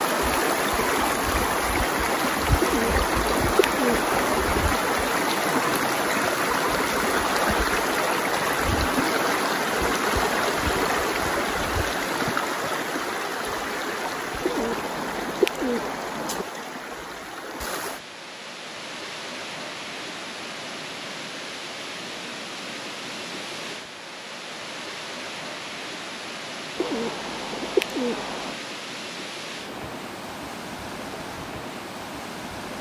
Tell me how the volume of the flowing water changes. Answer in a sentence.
The volume of the flowing water goes down.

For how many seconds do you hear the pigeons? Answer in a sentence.
You can hear the pigeons for 6 seconds altogether.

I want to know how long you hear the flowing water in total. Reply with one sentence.
The flowing water can be heard for 33 seconds in total.